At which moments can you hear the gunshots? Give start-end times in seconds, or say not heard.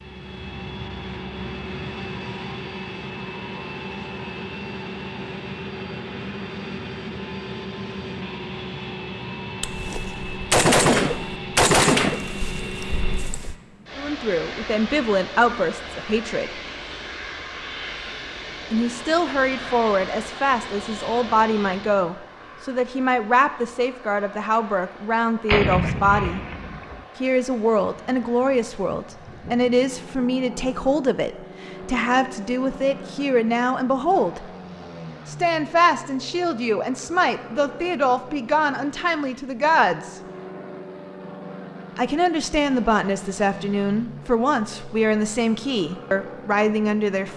9.6-13.6, 25.4-27.0.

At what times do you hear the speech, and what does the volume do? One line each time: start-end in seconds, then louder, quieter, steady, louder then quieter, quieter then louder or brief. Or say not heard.
13.9-16.6 brief
18.7-26.4 steady
27.2-34.5 steady
35.2-40.2 steady
42.0-47.3 steady.